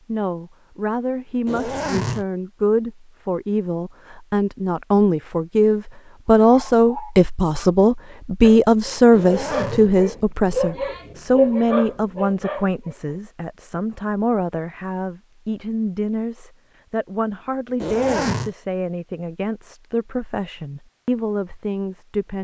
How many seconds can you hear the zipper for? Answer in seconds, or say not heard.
2 s.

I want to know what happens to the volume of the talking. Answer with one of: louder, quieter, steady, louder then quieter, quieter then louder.
louder then quieter.